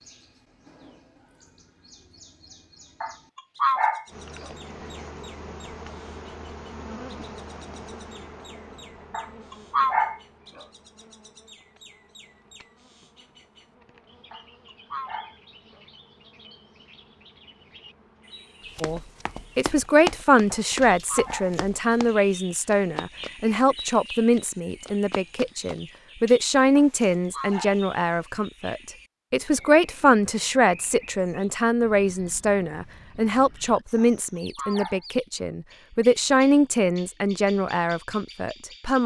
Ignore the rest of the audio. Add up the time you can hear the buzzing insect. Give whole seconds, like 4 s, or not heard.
16 s.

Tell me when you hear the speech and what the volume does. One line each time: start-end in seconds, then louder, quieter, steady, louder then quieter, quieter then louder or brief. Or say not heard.
18.8-39.0 steady.